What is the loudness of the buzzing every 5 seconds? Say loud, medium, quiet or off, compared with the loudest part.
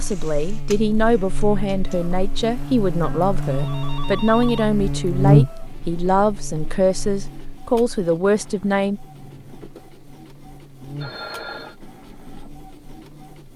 medium, loud, quiet.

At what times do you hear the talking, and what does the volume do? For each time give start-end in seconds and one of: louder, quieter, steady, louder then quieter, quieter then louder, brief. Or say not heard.
0.0-9.0 steady.